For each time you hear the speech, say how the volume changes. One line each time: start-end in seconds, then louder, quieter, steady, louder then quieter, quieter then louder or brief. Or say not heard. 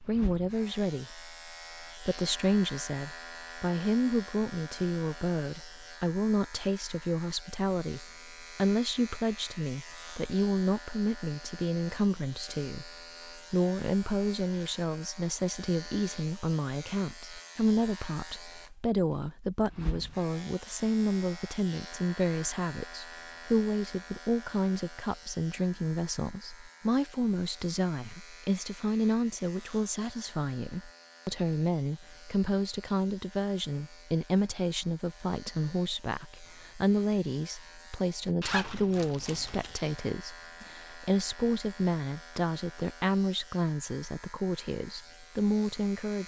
0.0-46.2 steady.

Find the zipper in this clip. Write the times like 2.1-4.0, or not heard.
38.4-39.8.